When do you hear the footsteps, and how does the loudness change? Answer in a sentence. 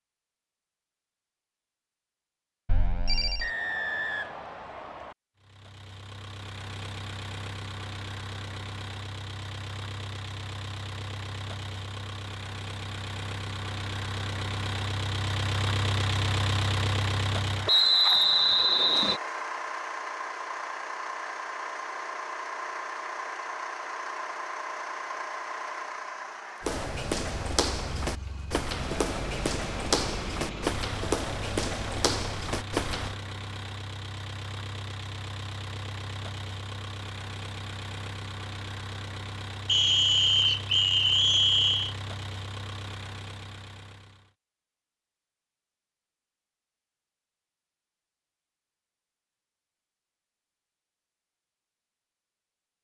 You can hear the footsteps from 26.6 to 33.1 s, at a steady volume.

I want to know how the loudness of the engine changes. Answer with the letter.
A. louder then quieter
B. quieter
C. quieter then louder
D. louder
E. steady
A.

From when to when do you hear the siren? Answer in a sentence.
The siren can't be heard in this clip.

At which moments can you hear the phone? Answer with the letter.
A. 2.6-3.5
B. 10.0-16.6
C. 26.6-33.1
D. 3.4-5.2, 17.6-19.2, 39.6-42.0
A.